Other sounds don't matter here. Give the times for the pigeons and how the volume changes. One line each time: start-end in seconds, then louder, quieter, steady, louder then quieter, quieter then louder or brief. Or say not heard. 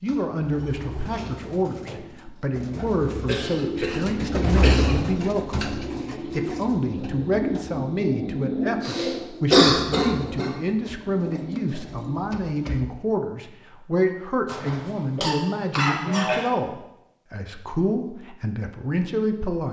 0.3-12.3 louder then quieter.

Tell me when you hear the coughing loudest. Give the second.
10 s.